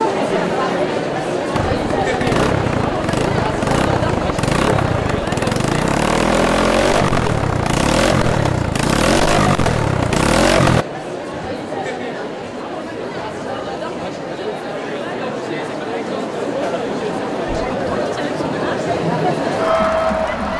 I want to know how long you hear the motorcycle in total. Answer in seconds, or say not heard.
9 s.